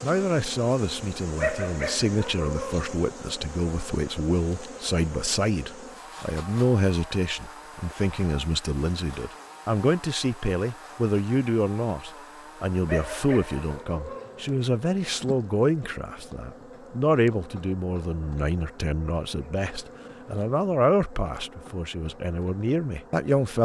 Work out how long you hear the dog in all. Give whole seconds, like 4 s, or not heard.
3 s.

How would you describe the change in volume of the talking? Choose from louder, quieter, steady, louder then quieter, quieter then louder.
steady.